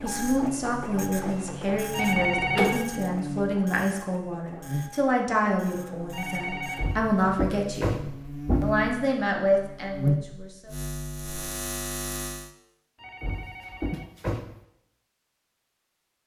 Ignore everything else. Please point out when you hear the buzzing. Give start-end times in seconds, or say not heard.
0.0-12.5.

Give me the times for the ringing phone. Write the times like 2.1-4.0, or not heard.
1.9-2.9, 6.1-7.0, 12.9-14.2.